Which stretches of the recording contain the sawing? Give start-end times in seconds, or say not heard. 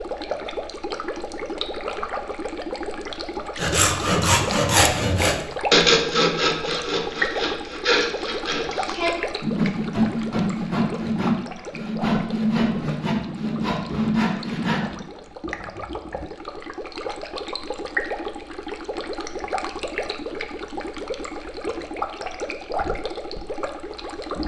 3.5-15.1.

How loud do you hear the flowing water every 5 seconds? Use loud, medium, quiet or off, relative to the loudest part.
loud, loud, medium, loud, loud.